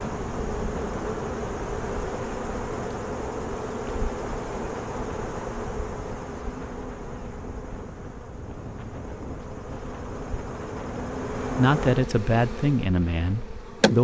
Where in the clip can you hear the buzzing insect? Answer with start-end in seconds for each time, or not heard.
0.0-13.9.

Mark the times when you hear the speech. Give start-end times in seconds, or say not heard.
11.6-13.9.